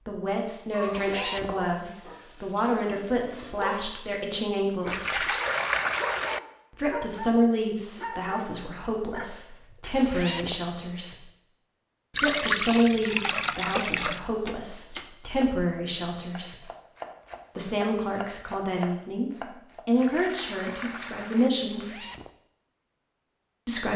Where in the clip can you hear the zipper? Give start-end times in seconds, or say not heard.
0.8-1.8, 9.8-10.8, 21.6-22.4.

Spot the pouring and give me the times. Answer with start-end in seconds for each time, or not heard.
4.8-6.4, 12.1-14.2, 19.9-21.5.